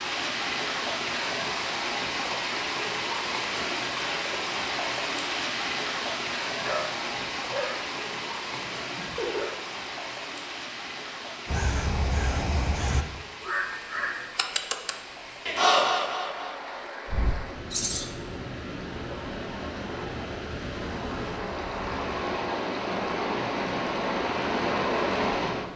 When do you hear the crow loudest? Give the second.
16 s.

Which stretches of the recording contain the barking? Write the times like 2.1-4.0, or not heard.
6.6-9.5.